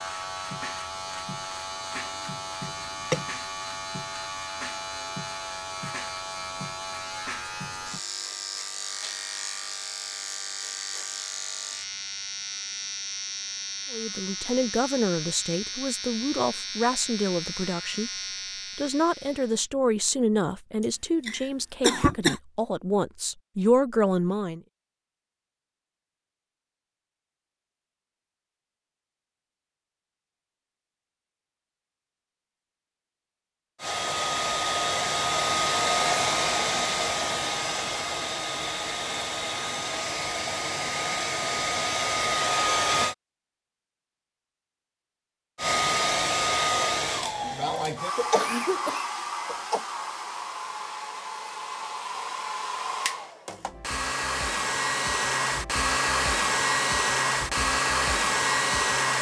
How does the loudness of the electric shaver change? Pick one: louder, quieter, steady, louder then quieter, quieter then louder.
steady.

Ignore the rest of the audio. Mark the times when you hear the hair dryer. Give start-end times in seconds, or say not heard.
33.8-43.1, 45.5-59.1.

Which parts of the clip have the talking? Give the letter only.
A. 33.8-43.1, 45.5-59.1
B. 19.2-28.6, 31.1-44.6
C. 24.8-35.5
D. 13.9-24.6
D.